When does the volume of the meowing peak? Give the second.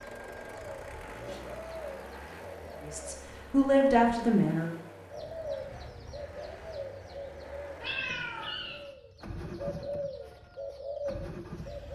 8 s.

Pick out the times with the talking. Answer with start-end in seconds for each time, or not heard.
2.9-4.7.